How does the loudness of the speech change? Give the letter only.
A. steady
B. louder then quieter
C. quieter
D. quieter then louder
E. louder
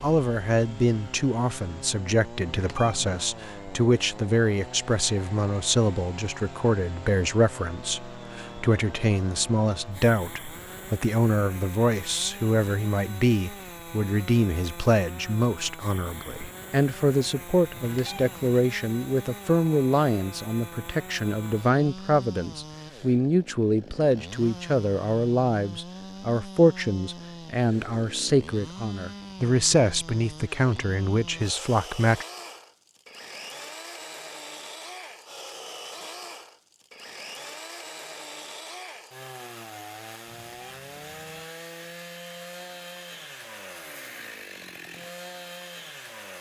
A.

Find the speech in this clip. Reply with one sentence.
The speech can be heard from 0.0 to 32.2 s.